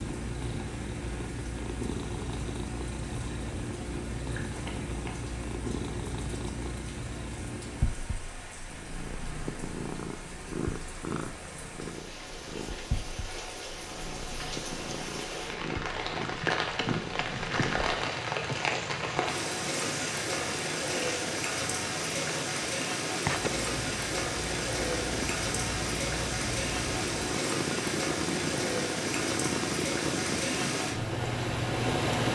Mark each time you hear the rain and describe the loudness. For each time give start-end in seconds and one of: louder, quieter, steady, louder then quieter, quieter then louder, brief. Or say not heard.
0.0-32.2 louder.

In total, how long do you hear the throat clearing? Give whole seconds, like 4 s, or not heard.
3 s.